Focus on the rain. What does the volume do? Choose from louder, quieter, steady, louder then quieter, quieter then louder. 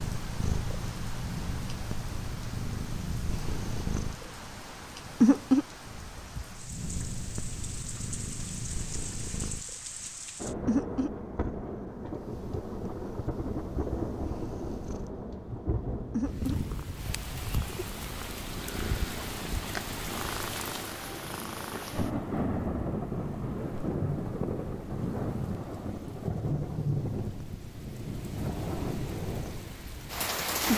louder.